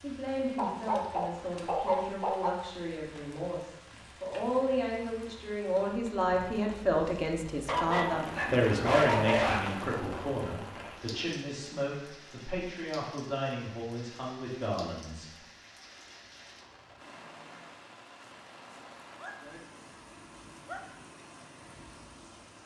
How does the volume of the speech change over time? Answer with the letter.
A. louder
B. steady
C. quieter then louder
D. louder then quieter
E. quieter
D.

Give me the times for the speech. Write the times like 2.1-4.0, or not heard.
0.0-15.3.